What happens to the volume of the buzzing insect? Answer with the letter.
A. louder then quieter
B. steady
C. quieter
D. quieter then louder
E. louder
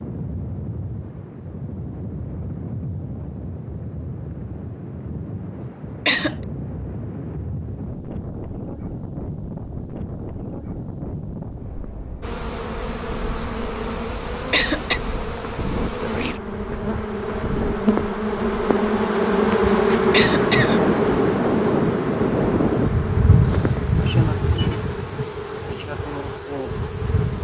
A.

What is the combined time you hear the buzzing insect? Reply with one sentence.
The buzzing insect can be heard for 15 seconds in total.